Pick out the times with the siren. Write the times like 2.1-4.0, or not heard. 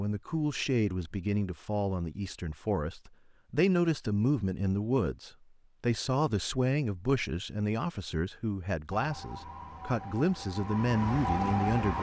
8.9-11.9.